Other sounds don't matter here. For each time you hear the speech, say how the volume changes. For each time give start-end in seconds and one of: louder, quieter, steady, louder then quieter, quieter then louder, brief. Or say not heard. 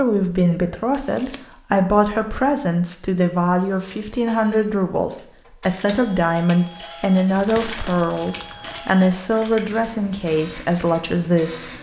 0.0-11.7 steady.